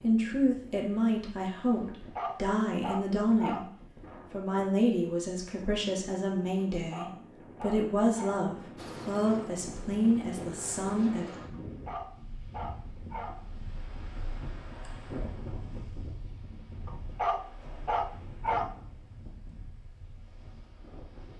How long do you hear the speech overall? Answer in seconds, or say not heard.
11 s.